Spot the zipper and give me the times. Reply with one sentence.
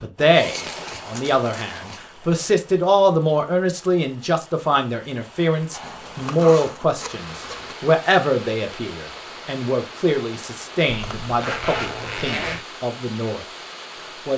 You can hear the zipper from 0.1 to 2.0 s, from 5.7 to 7.8 s and from 10.8 to 12.7 s.